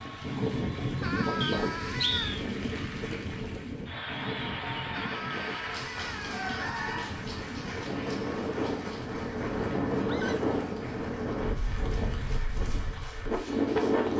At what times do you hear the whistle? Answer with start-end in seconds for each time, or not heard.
1.4-2.4.